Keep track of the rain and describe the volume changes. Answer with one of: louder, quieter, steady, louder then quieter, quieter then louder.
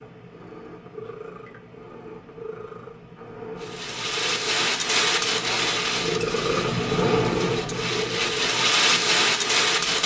quieter then louder.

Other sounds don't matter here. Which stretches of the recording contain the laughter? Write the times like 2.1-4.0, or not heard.
not heard.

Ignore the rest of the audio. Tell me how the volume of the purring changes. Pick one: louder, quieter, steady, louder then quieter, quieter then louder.
louder then quieter.